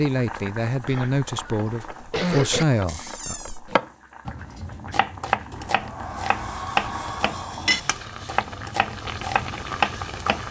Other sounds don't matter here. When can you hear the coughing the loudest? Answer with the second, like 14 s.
2 s.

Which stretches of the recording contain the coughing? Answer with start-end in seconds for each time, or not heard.
0.8-2.6.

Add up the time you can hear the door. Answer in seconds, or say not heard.
3 s.